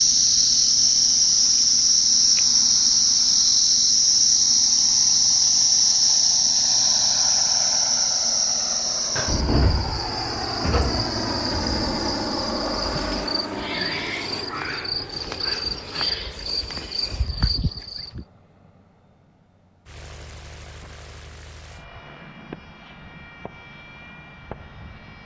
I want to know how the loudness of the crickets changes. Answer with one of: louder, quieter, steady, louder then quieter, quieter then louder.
quieter.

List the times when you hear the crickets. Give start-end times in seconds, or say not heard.
0.0-18.2.